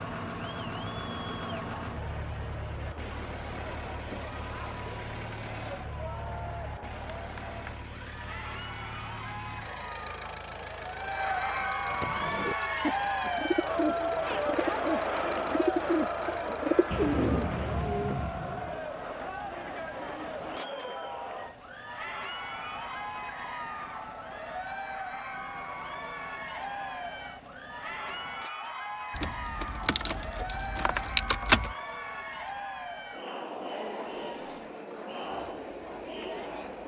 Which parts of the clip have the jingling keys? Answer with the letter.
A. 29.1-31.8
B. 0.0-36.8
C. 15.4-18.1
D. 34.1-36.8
A.